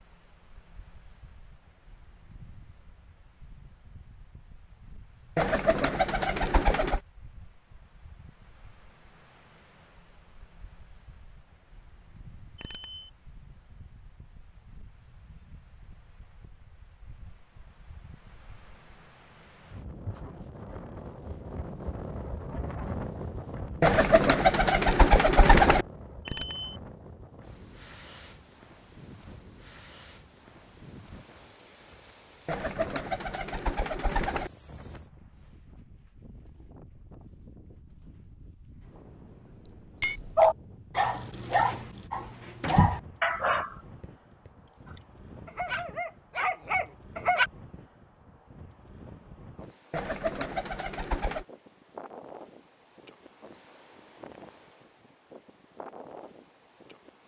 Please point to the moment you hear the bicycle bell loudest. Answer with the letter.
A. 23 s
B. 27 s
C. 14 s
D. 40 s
D.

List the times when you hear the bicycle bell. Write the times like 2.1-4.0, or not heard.
12.6-13.1, 26.2-26.7, 39.6-40.4.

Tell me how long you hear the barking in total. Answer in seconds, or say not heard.
7 s.